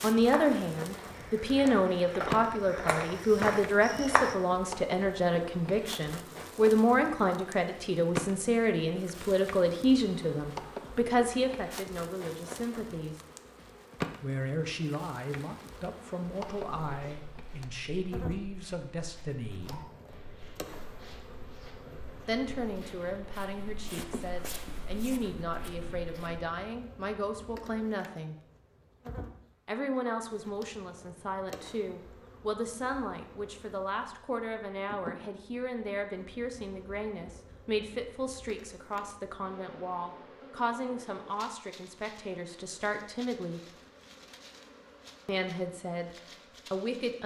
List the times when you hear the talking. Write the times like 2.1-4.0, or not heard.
0.0-13.2, 14.2-19.9, 22.2-28.4, 29.6-43.6, 45.2-47.2.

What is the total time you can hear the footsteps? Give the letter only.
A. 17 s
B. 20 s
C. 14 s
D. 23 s
C.